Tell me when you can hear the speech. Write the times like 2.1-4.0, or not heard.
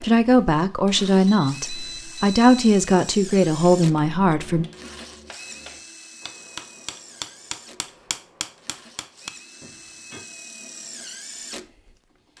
0.0-4.7.